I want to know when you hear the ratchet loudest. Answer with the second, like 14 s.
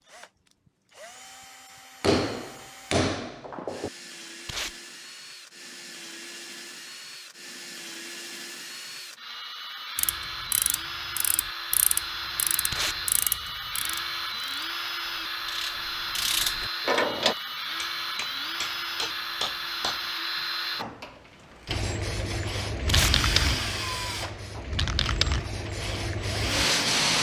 17 s.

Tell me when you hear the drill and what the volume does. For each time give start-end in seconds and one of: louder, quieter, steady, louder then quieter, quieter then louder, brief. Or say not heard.
0.0-26.9 louder.